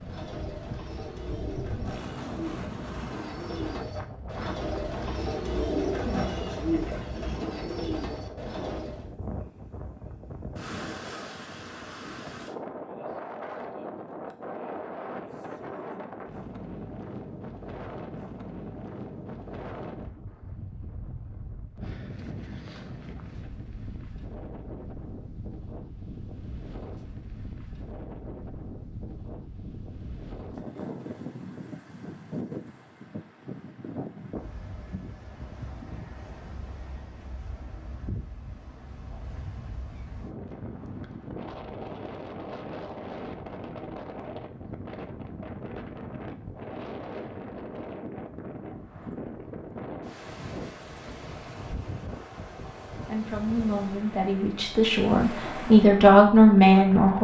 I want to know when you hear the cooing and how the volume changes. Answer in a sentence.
The cooing can be heard from 0.0 to 9.1 s, getting louder then quieter.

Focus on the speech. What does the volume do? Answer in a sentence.
The loudness of the speech goes up.